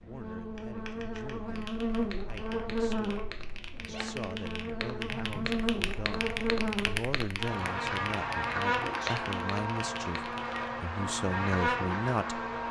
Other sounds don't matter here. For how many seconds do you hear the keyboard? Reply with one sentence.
The keyboard can be heard for 10 seconds in total.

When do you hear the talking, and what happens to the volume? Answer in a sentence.
You can hear the talking from 0.1 to 12.4 s, getting louder.